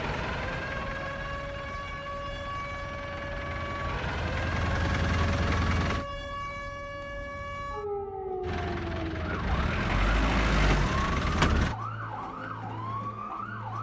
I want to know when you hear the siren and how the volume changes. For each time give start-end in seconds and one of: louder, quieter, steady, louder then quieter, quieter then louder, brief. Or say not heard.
0.0-13.7 steady.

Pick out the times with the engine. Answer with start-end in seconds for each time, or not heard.
0.0-6.0, 8.4-11.8.